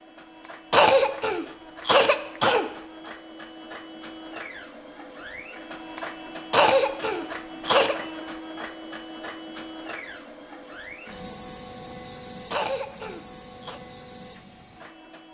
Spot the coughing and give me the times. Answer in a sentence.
You can hear the coughing from 0.7 to 2.6 s, from 6.5 to 8.0 s and from 12.5 to 13.8 s.